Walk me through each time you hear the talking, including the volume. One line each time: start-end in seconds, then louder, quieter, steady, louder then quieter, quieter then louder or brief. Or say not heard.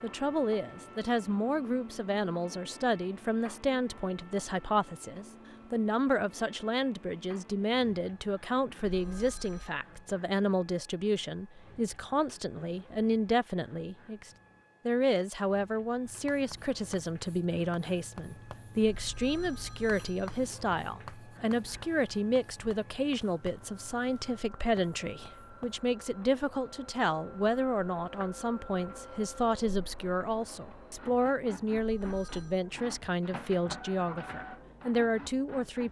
0.0-35.8 steady.